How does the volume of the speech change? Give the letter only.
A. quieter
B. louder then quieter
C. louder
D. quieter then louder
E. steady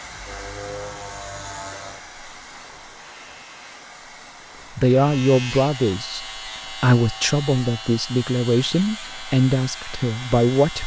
E.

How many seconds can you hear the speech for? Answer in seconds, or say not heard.
6 s.